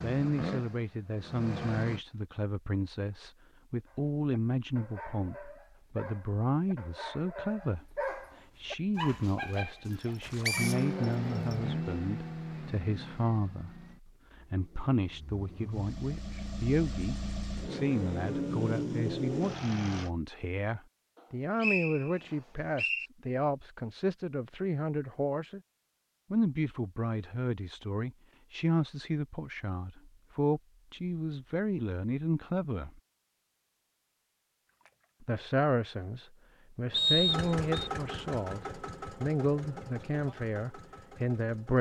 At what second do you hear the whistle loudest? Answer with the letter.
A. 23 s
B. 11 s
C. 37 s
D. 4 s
C.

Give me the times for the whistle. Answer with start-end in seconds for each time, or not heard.
10.4-11.6, 21.6-23.1, 36.9-37.9.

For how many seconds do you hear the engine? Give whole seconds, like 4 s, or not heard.
16 s.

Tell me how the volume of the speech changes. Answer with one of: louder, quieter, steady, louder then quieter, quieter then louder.
steady.